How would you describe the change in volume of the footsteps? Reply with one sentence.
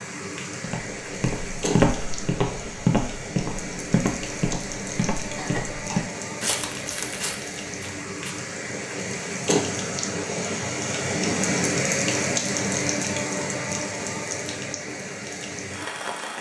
The volume of the footsteps goes down.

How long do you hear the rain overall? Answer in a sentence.
You can hear the rain for 16 seconds altogether.